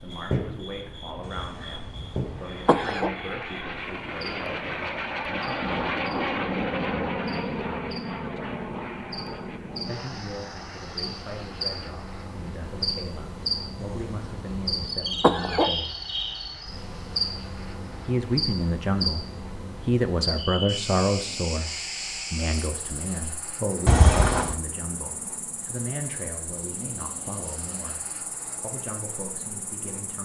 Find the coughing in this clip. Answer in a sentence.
The coughing can be heard from 1.2 to 3.1 s, from 13.8 to 15.7 s and from 23.9 to 24.6 s.